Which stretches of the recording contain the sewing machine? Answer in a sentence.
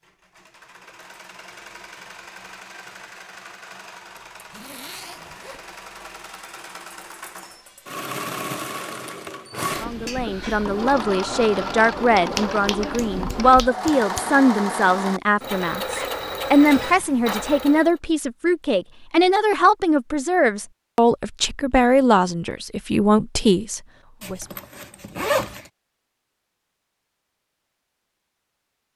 The sewing machine can be heard from 0.0 to 18.0 s.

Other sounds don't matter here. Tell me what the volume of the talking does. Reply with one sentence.
The volume of the talking stays about the same.